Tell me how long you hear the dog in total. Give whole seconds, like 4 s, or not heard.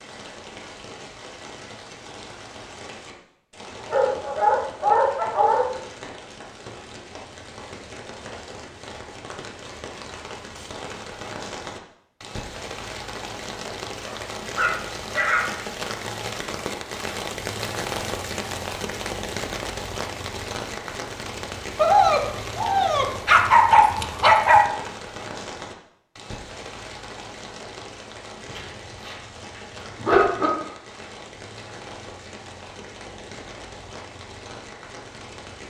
8 s.